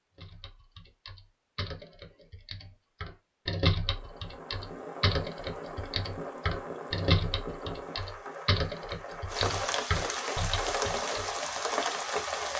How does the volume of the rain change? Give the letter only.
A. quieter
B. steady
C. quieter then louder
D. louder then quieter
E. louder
E.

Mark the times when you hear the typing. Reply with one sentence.
The typing can be heard from 0.1 to 11.3 s.